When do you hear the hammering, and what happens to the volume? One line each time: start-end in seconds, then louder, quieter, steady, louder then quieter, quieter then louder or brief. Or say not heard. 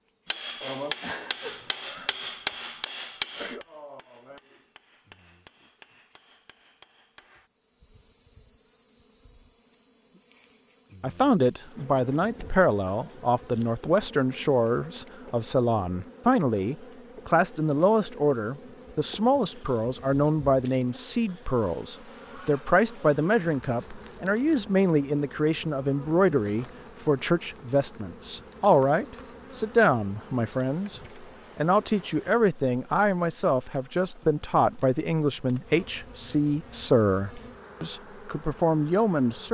0.2-7.5 quieter.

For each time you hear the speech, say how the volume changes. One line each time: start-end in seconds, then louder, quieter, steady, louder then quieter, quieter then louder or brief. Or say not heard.
11.0-39.4 steady.